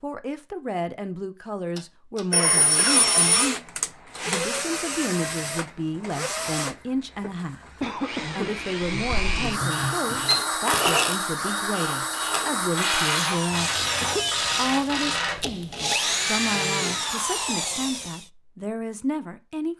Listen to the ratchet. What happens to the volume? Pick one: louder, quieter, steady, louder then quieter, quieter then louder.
quieter then louder.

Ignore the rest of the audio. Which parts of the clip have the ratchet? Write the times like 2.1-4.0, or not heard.
9.7-15.4.